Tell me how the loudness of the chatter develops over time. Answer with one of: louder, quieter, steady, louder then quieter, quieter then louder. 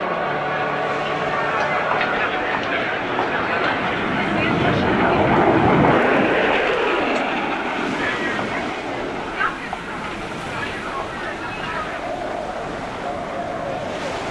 quieter.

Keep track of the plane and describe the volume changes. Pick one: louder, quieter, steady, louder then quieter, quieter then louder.
louder then quieter.